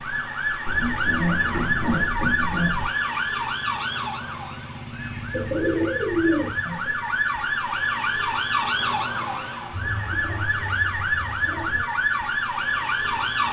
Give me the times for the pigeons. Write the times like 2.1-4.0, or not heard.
0.7-2.9, 5.3-6.9, 9.7-11.8.